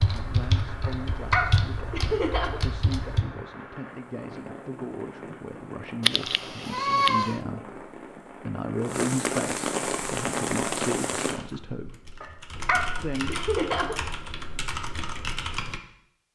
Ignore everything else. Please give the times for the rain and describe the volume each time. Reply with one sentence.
You can hear the rain from 0.0 to 11.4 s, getting louder.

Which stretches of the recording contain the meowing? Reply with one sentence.
The meowing can be heard from 6.0 to 7.4 s.